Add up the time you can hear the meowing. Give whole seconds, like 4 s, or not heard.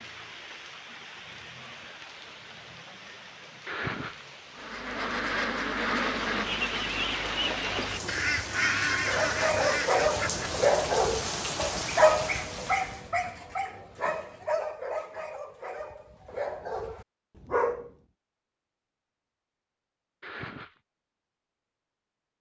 3 s.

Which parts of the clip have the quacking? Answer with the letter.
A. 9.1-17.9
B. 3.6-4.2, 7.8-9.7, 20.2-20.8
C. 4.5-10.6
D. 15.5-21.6
C.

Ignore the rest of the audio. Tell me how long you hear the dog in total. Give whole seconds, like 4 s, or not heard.
9 s.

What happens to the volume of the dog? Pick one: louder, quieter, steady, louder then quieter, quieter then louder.
quieter.